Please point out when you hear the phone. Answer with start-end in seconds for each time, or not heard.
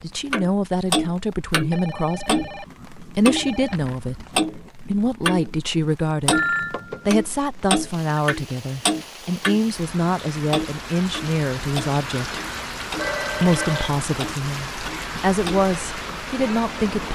1.7-2.6, 3.4-4.0, 6.3-8.2, 12.9-13.9.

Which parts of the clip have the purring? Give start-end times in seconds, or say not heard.
not heard.